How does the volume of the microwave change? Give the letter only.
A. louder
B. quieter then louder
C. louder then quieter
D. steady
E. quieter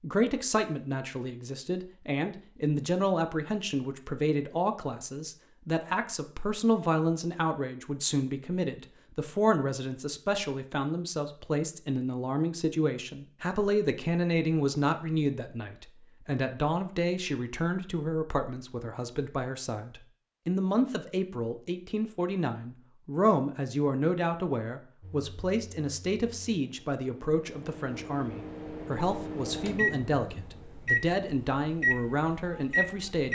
A.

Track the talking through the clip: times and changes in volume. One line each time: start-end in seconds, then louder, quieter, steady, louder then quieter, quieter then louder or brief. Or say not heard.
0.0-33.3 steady.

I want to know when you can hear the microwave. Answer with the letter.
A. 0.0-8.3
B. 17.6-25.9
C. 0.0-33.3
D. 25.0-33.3
D.